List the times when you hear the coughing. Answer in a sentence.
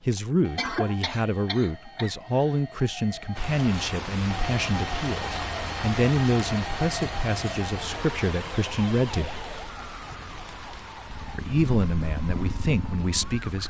The coughing can be heard from 0.1 to 2.5 s.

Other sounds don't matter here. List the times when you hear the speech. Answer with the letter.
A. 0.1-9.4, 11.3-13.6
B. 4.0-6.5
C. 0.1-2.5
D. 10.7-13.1
A.